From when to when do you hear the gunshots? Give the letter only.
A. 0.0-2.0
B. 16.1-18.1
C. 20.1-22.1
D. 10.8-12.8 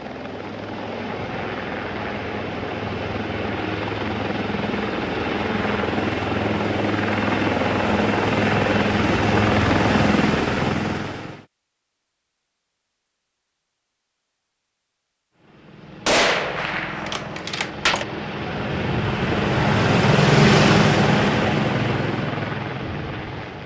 B.